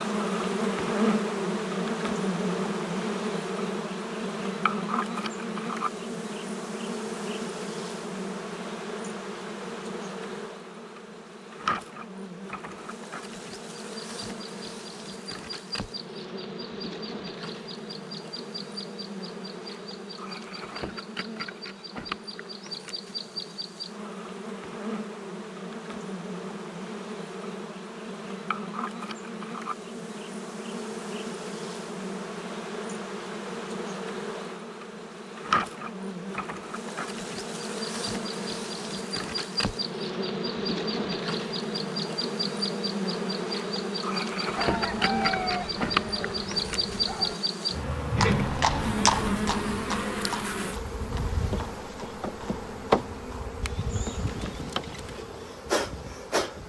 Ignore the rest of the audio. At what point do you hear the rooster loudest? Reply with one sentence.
The loudest moment of the rooster is at 45 seconds.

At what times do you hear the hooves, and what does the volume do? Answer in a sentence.
The hooves can be heard from 48.1 to 55.2 s, getting quieter.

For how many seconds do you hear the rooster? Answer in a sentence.
The rooster can be heard for 3 seconds in total.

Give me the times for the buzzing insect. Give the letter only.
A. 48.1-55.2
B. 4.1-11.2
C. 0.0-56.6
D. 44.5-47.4
C.